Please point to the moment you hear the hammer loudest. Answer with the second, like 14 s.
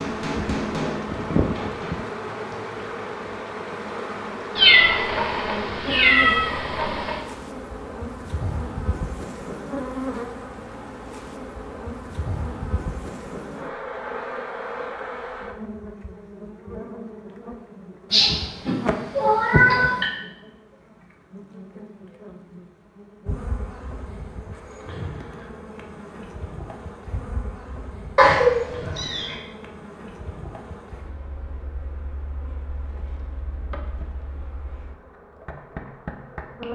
1 s.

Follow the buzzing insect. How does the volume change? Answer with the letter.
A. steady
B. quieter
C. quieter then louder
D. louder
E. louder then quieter
B.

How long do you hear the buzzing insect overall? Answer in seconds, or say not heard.
37 s.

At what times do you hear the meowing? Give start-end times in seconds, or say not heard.
4.5-7.2, 18.1-20.1, 28.1-29.4.